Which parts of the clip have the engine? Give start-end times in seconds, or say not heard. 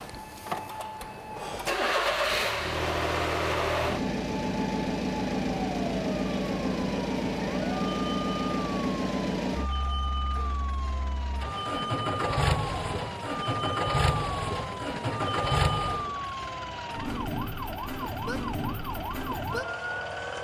0.0-20.3.